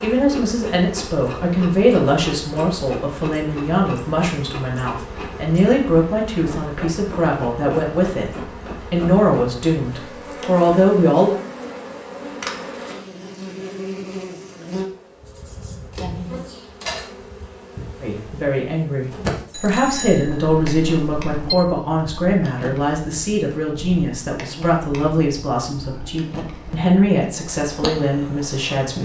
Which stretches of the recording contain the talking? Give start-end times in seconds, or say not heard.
0.0-11.3, 18.0-28.9.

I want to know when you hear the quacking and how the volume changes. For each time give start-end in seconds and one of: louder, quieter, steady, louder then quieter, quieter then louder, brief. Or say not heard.
not heard.